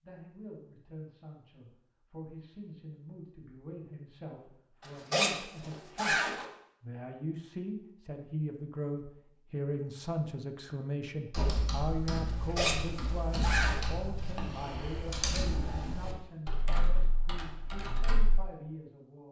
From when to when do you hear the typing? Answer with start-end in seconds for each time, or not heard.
11.3-18.4.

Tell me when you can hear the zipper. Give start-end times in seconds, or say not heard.
4.8-6.5, 12.2-13.9.